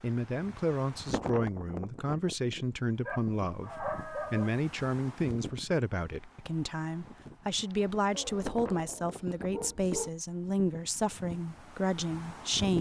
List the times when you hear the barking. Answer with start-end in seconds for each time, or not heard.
3.0-4.5, 8.1-10.1.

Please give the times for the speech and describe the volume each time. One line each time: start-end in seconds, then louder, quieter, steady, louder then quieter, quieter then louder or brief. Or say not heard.
0.0-12.7 steady.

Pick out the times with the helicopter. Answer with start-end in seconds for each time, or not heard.
not heard.